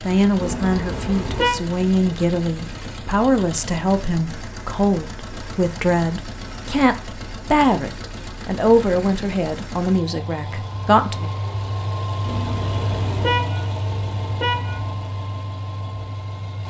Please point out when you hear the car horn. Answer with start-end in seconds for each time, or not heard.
0.4-1.6, 12.2-14.8.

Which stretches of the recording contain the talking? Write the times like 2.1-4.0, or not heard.
0.0-11.3.